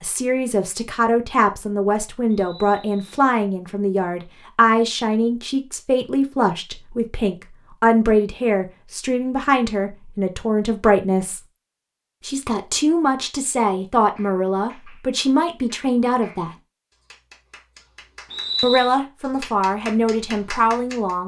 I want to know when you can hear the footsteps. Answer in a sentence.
The footsteps can't be heard in this clip.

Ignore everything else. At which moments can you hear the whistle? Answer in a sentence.
You can hear the whistle from 2.4 to 3.1 s and from 18.3 to 18.9 s.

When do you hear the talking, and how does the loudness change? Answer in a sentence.
The talking can be heard from 0.0 to 11.4 s, at a steady volume; from 12.2 to 16.5 s, at a steady volume; and briefly from 18.6 to 21.2 s.